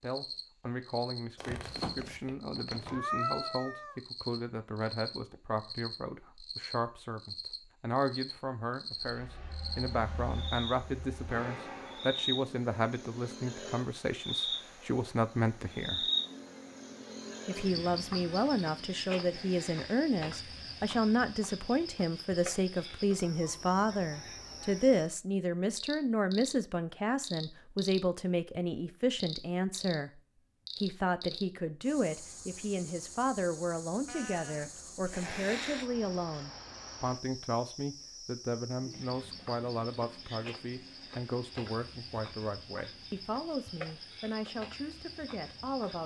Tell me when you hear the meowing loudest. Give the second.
3 s.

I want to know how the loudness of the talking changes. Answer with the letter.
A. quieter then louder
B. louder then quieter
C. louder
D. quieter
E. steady
B.